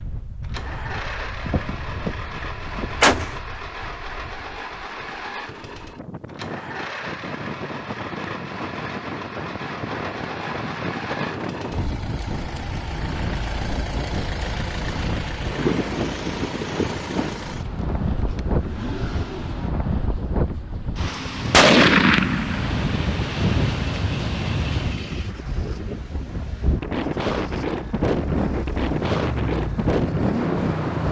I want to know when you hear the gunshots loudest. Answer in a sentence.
The loudest moment of the gunshots is at 22 seconds.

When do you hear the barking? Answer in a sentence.
The barking can't be heard in this clip.